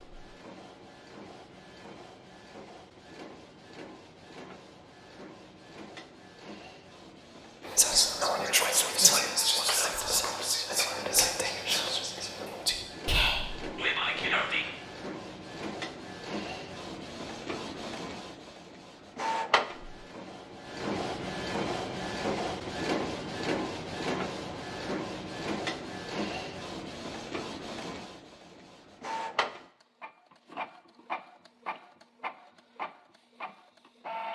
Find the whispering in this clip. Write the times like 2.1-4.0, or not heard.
7.7-14.7.